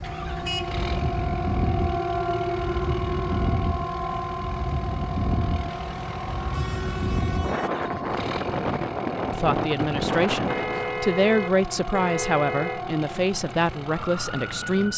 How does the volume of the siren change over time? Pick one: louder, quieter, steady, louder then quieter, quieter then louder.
quieter.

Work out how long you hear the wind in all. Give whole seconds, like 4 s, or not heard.
11 s.